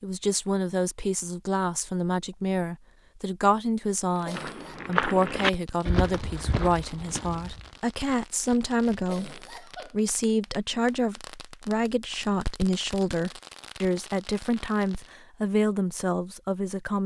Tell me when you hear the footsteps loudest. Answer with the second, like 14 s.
5 s.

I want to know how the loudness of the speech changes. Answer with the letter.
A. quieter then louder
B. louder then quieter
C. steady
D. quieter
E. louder
C.